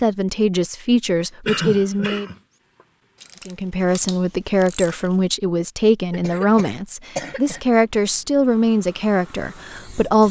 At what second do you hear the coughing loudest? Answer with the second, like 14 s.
2 s.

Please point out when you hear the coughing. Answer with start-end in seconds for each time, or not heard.
1.4-2.4, 6.1-7.6.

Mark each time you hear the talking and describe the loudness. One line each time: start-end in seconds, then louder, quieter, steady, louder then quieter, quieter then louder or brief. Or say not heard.
0.0-2.3 brief
3.5-10.2 steady.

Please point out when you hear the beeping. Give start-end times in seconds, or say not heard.
not heard.